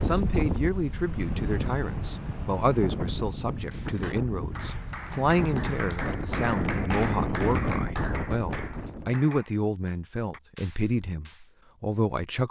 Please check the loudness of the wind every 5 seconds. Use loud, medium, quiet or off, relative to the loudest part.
loud, loud, off.